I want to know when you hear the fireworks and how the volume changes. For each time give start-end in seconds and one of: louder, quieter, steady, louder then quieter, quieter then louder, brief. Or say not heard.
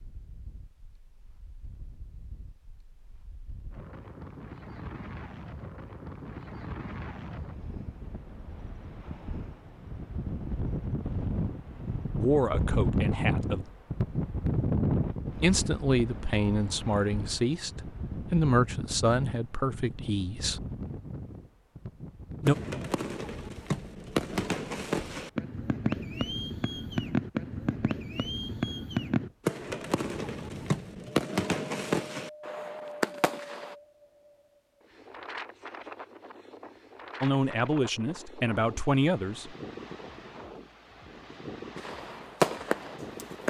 22.4-33.8 steady
41.8-43.4 brief.